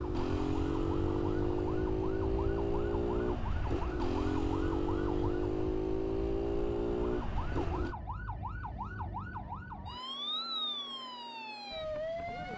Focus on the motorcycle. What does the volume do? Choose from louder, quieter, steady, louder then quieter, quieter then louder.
steady.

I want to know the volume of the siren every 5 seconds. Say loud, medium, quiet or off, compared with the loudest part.
medium, medium, loud.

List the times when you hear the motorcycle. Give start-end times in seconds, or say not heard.
0.0-8.0.